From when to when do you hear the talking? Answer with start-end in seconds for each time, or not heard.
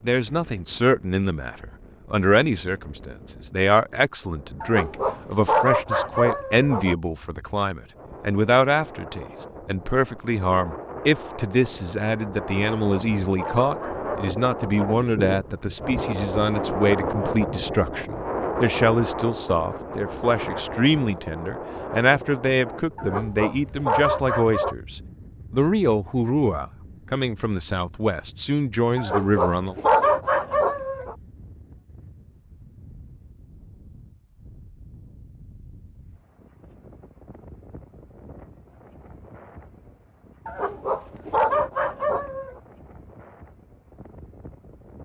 0.0-29.8.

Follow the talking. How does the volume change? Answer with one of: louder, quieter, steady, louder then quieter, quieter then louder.
steady.